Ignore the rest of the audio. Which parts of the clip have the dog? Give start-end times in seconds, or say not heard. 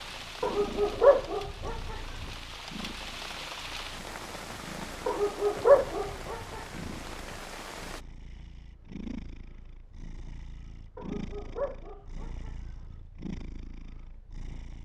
0.4-2.2, 5.0-7.0, 10.9-12.8.